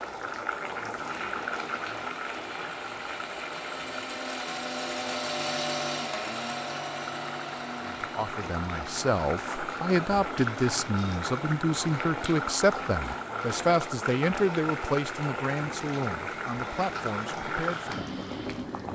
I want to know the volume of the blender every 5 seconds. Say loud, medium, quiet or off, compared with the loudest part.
loud, loud, medium, medium.